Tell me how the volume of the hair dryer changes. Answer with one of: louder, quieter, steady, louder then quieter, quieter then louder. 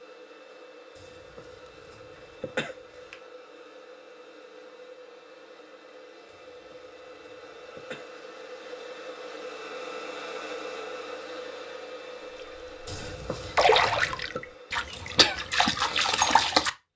louder then quieter.